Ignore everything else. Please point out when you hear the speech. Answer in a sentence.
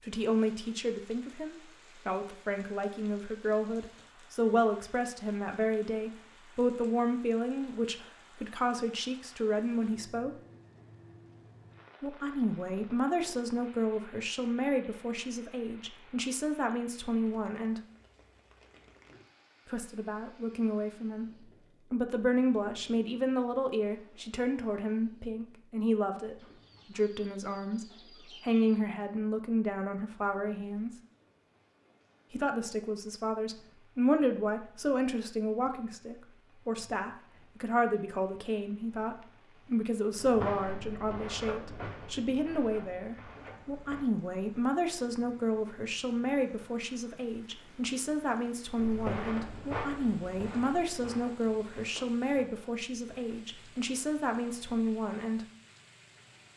The speech can be heard from 0.0 to 10.3 s, from 12.0 to 17.8 s, from 19.6 to 30.9 s and from 32.3 to 55.4 s.